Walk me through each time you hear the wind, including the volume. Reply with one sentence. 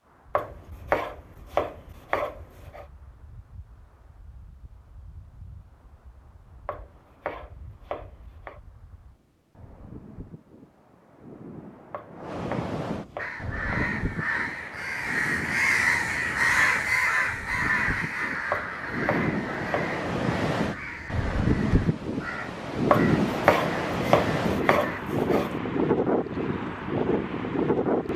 You can hear the wind from 0.0 to 28.1 s, getting louder.